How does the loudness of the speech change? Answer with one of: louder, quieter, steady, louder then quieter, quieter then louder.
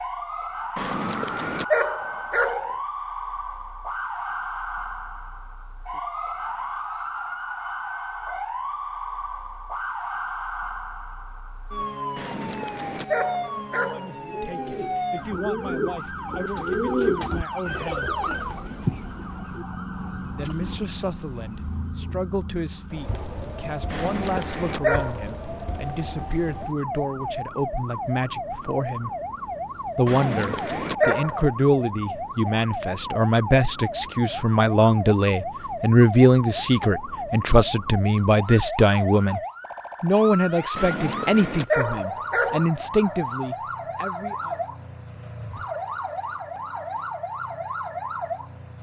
louder.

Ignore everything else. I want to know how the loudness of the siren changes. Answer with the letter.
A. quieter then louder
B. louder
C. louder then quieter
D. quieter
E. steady
E.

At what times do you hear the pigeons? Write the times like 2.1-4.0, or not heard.
14.1-22.2.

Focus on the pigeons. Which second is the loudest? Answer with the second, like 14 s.
17 s.